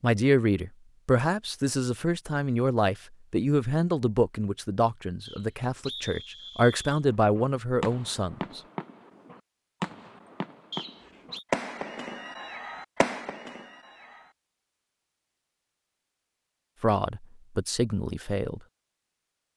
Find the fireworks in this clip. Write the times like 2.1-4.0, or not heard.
7.2-14.2.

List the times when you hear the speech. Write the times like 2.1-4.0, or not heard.
0.0-8.6, 16.8-18.6.